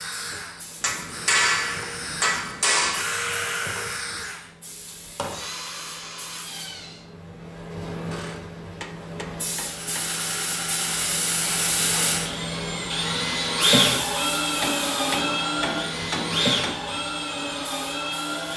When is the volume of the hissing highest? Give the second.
12 s.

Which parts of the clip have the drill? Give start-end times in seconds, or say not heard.
0.0-7.0, 9.6-18.5.